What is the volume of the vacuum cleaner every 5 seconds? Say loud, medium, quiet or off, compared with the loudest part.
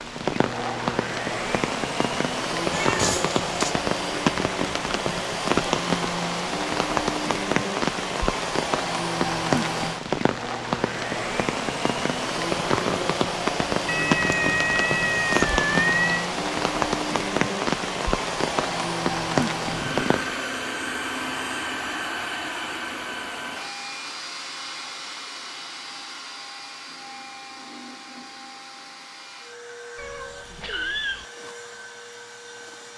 loud, loud, loud, loud, loud, medium, quiet.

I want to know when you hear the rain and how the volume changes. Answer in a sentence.
The rain can be heard from 0.0 to 20.4 s, at a steady volume.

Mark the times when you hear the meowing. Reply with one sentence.
The meowing can be heard from 2.7 to 3.8 s, from 13.8 to 16.2 s and from 29.9 to 31.2 s.